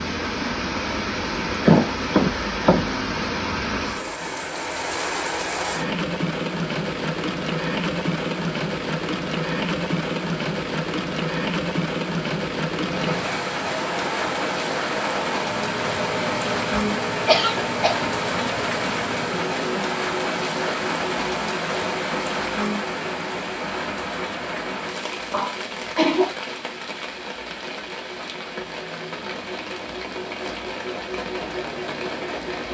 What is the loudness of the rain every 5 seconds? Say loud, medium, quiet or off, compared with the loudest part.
loud, loud, loud, loud, loud, medium, medium.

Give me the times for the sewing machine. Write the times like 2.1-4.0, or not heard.
12.8-32.6.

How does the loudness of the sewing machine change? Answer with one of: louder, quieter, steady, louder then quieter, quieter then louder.
quieter then louder.